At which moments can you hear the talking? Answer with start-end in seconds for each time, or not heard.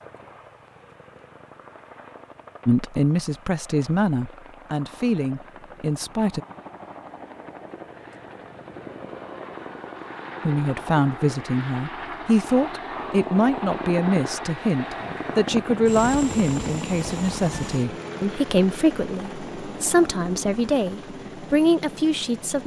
2.6-6.4, 10.4-22.6.